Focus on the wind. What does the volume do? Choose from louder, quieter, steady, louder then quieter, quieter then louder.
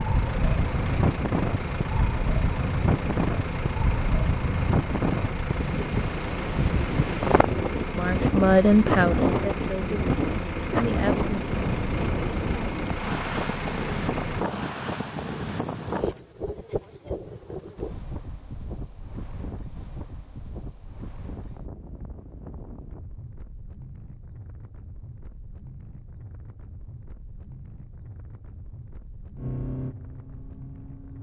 quieter.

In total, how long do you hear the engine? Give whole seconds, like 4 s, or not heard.
16 s.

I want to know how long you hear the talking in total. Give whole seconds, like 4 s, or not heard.
4 s.